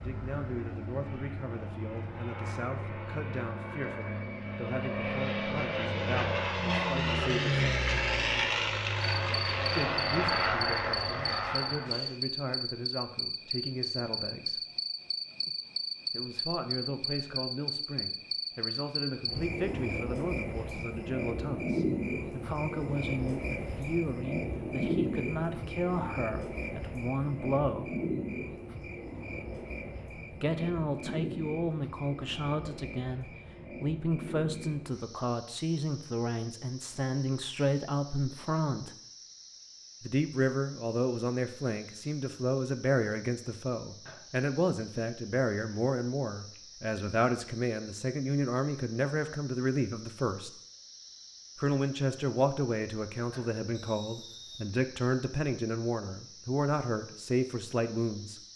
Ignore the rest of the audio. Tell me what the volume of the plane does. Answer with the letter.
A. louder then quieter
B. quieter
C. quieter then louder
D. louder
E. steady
D.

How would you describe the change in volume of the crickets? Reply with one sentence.
The loudness of the crickets goes down.